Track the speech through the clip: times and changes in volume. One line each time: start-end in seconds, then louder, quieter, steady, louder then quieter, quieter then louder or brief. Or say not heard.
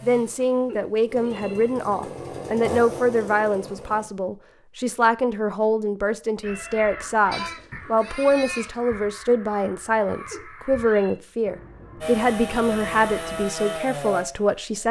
0.0-14.8 steady.